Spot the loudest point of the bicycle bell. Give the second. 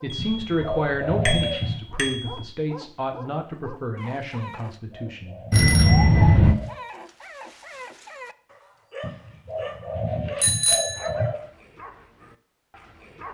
6 s.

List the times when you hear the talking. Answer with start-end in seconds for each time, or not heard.
0.0-5.6.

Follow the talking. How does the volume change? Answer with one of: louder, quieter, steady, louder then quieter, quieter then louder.
quieter.